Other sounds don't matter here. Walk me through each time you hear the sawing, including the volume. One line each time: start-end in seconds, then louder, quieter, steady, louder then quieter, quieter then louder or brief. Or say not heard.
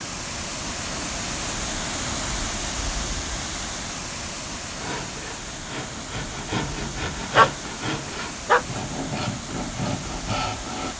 4.8-10.9 louder.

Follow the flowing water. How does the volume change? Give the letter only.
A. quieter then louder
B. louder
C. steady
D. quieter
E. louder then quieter
D.